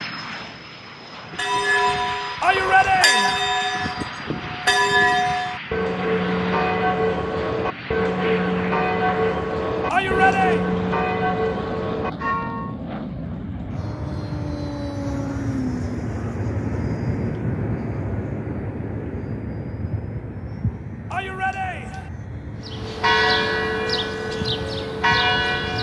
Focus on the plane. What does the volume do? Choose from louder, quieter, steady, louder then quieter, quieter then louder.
louder then quieter.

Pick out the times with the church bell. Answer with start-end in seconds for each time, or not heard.
1.3-12.8, 22.6-25.7.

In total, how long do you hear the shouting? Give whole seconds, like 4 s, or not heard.
3 s.